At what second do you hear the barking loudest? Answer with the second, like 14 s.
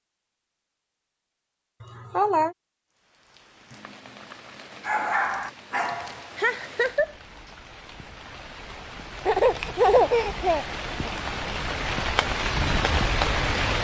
5 s.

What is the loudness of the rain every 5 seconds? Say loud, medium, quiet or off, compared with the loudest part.
quiet, quiet, loud.